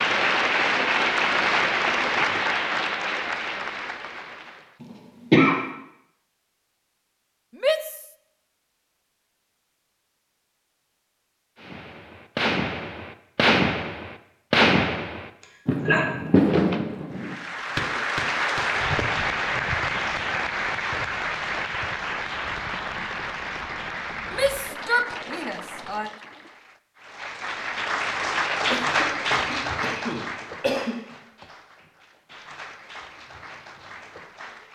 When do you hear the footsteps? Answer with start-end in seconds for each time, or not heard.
not heard.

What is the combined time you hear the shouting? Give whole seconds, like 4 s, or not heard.
2 s.